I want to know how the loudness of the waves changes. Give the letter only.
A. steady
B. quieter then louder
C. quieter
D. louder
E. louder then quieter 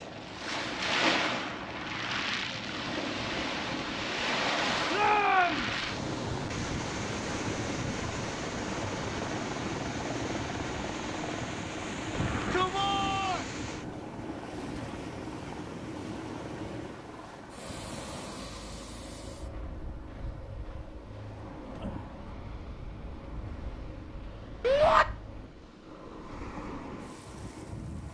C.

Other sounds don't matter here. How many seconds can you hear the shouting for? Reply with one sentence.
You can hear the shouting for 3 seconds altogether.